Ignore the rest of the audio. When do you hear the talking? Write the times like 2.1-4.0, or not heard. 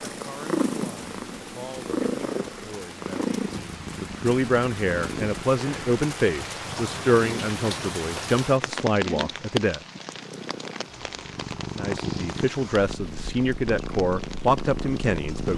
0.1-9.8, 11.8-15.5.